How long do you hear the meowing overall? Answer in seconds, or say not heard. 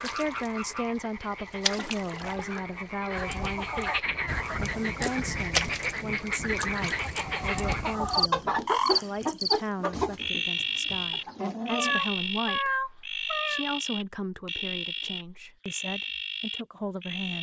2 s.